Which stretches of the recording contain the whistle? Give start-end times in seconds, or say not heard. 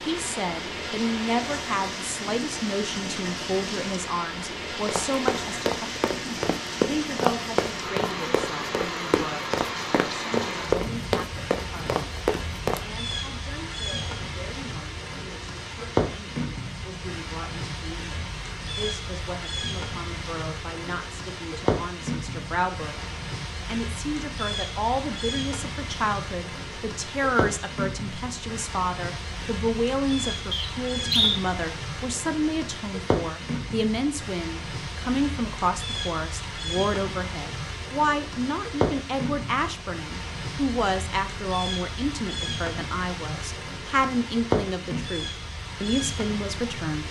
30.5-31.4.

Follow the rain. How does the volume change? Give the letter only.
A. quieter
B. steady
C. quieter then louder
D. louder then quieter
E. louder
B.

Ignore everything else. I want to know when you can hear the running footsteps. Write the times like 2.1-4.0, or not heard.
4.8-12.8.